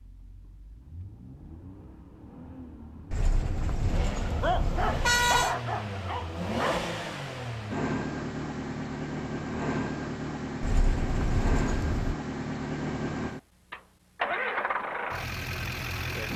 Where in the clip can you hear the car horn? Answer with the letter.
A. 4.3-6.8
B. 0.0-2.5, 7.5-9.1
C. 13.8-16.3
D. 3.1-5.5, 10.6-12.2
D.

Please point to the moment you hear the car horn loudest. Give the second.
5 s.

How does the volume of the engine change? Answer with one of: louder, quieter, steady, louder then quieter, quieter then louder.
louder.